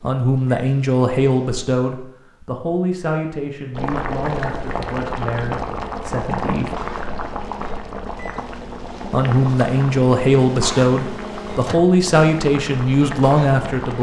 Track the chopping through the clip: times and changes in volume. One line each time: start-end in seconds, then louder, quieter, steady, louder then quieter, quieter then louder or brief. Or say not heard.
not heard.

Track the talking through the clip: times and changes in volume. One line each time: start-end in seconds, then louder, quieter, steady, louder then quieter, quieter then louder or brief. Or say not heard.
0.0-6.8 quieter
9.1-13.9 steady.